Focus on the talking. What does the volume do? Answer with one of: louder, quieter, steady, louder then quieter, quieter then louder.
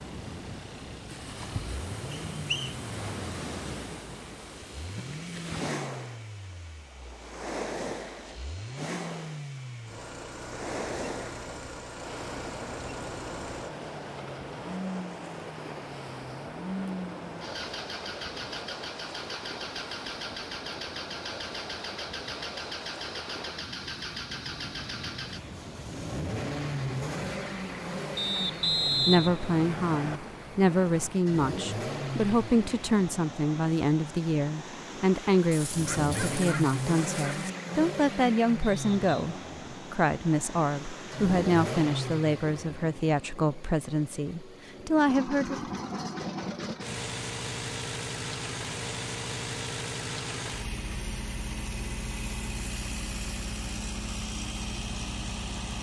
steady.